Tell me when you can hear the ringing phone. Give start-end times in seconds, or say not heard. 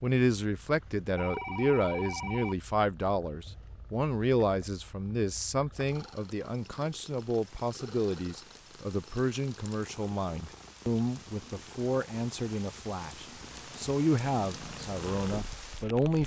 1.1-2.5.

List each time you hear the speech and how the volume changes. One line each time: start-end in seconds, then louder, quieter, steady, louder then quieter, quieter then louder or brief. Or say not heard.
0.0-16.2 steady.